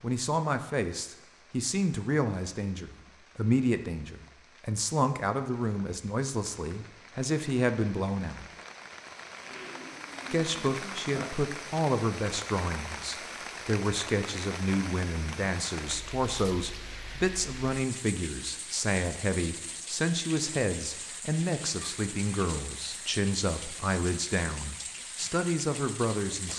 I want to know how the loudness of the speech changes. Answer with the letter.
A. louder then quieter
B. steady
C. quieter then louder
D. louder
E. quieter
B.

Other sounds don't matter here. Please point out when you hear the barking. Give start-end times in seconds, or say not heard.
not heard.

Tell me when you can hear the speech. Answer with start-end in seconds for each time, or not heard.
0.0-8.4, 10.3-26.5.